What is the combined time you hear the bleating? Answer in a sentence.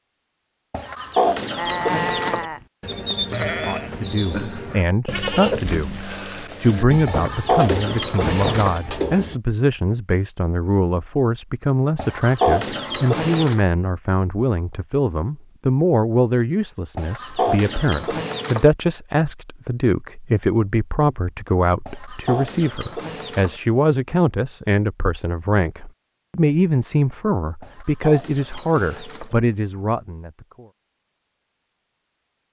The bleating can be heard for 8 seconds in total.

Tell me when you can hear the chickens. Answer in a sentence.
You can hear the chickens from 0.7 to 2.5 s, from 7.0 to 8.8 s, from 11.9 to 13.6 s, from 16.9 to 18.7 s, from 21.9 to 23.6 s and from 27.6 to 29.4 s.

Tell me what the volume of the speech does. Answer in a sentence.
The loudness of the speech stays about the same.